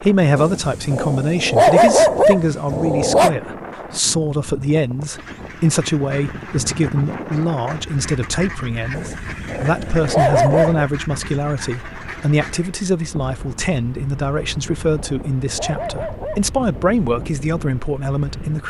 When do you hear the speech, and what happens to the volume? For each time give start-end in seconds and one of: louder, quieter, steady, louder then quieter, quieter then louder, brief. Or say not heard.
0.0-18.6 steady.